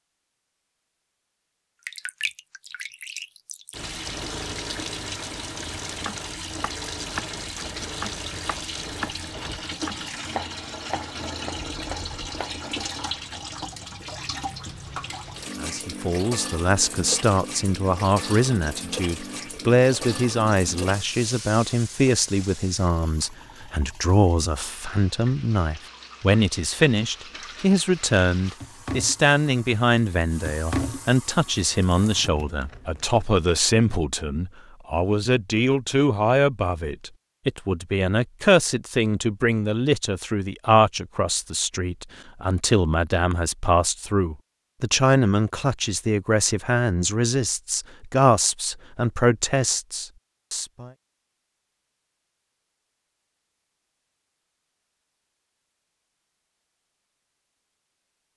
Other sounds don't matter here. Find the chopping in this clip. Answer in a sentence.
You can hear the chopping from 5.9 to 12.6 s.